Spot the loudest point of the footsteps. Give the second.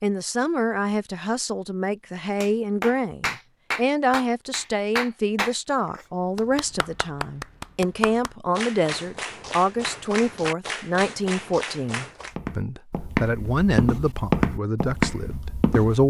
14 s.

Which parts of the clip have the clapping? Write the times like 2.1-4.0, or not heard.
2.4-12.3.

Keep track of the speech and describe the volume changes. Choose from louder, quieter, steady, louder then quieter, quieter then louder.
steady.